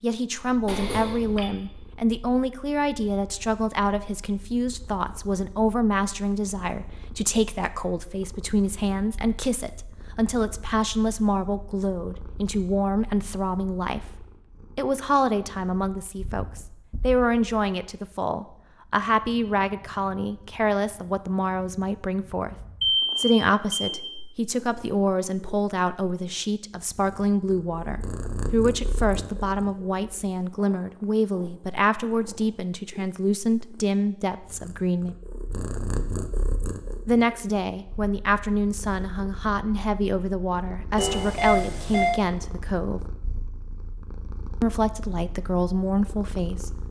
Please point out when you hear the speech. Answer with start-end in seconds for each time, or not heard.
0.0-22.6, 23.1-35.1, 37.0-43.0, 44.6-46.7.